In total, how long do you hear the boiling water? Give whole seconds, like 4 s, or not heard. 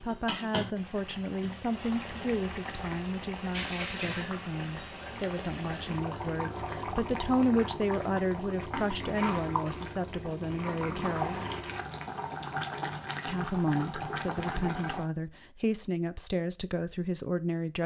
15 s.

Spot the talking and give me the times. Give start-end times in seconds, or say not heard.
0.0-11.3, 13.2-17.8.